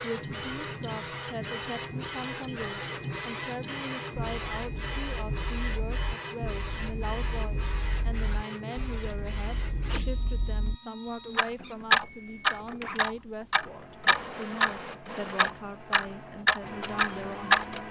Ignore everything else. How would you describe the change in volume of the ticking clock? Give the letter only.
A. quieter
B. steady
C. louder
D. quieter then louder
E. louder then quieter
C.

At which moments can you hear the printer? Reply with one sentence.
The printer can be heard from 0.0 to 17.8 s.